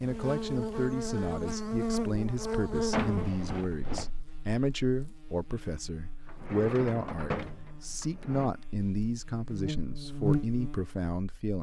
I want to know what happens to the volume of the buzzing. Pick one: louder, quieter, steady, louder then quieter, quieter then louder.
quieter then louder.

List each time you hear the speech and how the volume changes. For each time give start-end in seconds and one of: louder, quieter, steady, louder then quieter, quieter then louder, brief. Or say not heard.
0.0-11.5 steady.